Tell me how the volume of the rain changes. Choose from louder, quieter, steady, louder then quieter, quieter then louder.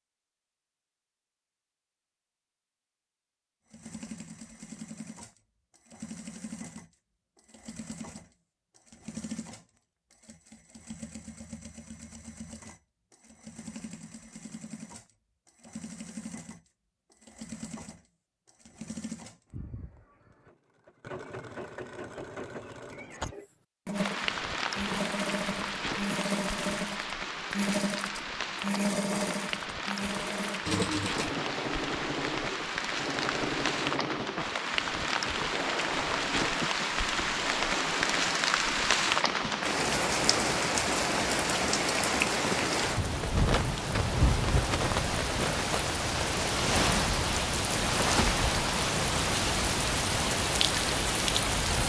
louder.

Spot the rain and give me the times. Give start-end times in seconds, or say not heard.
23.9-51.8.